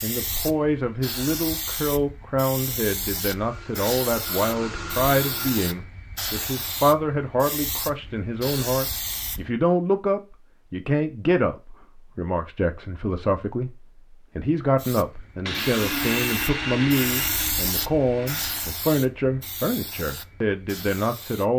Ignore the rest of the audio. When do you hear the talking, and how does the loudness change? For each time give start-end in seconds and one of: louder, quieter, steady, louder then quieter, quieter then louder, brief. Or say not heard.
0.0-21.5 steady.